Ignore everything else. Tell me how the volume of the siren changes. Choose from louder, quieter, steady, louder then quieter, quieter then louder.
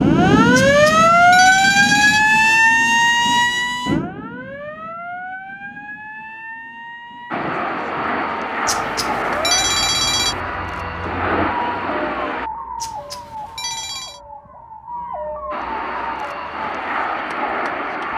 quieter.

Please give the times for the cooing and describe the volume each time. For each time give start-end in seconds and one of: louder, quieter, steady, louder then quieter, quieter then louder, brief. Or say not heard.
not heard.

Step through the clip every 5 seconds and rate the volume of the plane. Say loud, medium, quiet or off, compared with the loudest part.
off, loud, loud, loud.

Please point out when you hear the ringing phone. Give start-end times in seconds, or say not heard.
0.7-2.3, 8.7-10.4, 12.8-14.2.